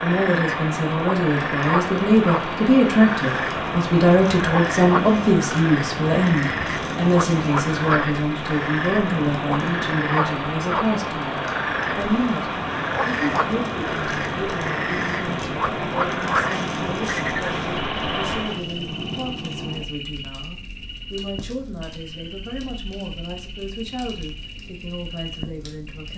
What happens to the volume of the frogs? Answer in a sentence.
The volume of the frogs goes down.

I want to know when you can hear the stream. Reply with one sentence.
The stream can be heard from 0.0 to 18.6 s.